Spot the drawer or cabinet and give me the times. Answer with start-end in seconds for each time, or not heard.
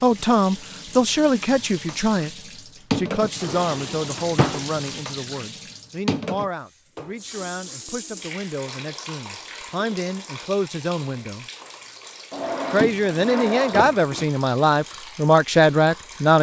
3.4-4.9, 12.3-14.2.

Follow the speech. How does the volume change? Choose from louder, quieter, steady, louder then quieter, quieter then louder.
quieter then louder.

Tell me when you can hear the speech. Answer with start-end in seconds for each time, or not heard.
0.0-11.4, 12.7-16.3.